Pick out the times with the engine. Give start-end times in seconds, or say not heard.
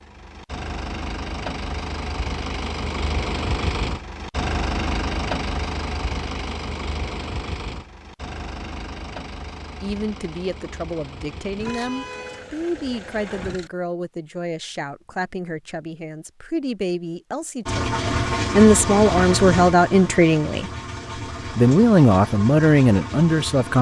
0.0-13.7, 17.6-23.7.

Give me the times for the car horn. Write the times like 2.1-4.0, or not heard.
11.6-12.5.